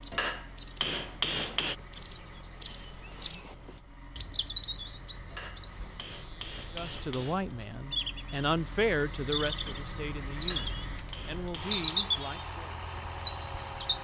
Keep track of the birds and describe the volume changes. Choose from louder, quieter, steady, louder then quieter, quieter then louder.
quieter then louder.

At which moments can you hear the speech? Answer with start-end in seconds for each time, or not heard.
6.7-12.8.